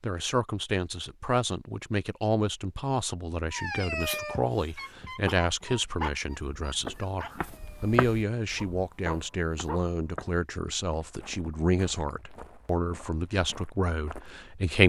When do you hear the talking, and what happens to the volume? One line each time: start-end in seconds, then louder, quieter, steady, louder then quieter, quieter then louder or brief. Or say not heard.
0.0-14.8 steady.